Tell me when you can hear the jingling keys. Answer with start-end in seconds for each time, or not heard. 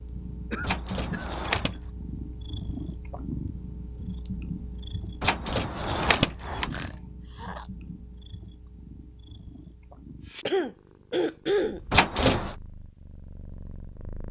0.6-1.8, 5.2-6.7, 11.9-12.6.